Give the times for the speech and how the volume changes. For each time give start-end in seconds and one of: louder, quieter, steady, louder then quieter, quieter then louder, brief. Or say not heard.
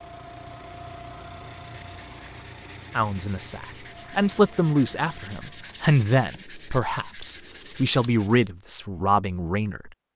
3.0-9.9 steady.